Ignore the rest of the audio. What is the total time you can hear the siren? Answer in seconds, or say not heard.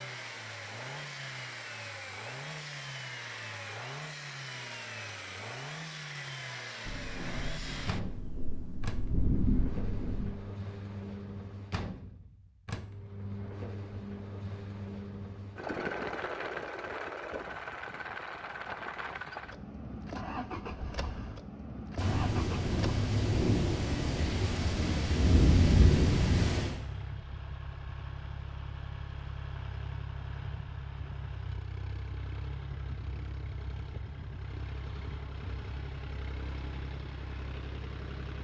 not heard.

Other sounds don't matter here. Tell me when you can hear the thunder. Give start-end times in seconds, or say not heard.
6.8-10.3, 21.9-26.8.